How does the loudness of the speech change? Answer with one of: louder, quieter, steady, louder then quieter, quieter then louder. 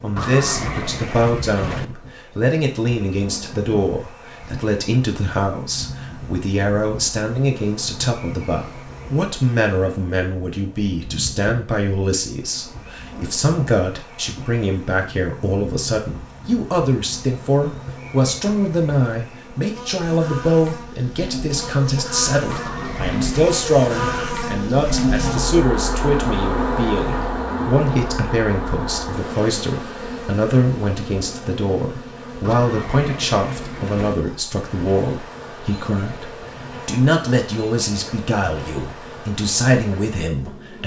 steady.